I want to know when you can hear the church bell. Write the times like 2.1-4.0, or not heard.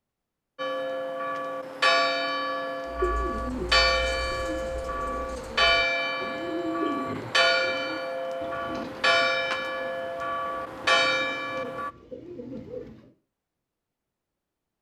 0.6-11.9.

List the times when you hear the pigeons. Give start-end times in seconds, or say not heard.
2.9-13.1.